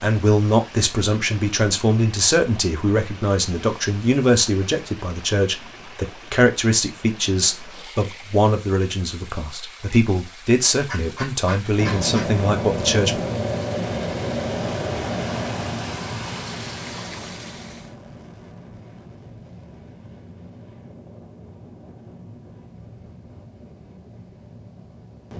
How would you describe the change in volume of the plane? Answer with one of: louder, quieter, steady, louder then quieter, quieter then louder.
quieter.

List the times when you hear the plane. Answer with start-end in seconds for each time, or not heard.
11.8-25.3.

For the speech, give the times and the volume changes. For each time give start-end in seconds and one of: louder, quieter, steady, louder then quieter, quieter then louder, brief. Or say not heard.
0.0-13.2 steady.